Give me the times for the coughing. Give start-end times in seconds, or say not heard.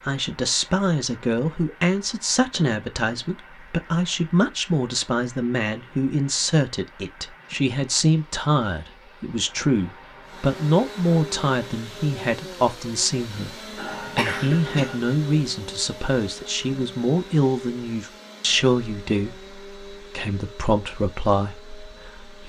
13.8-15.0.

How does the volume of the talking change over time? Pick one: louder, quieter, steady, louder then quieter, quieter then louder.
steady.